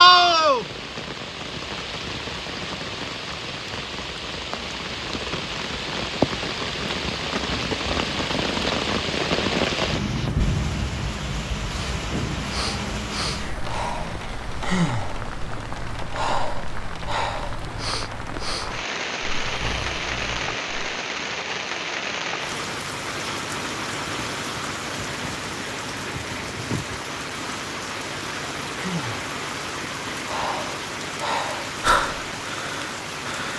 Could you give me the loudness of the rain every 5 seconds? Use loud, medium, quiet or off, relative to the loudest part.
loud, loud, medium, medium, medium, medium, medium.